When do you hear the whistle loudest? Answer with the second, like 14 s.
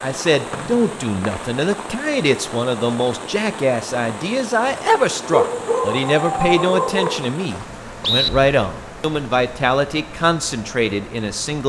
8 s.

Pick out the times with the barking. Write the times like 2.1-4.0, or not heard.
5.2-7.2.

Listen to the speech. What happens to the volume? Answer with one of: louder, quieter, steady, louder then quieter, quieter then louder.
steady.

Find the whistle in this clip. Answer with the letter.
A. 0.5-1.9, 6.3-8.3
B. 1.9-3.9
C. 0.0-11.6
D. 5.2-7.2
A.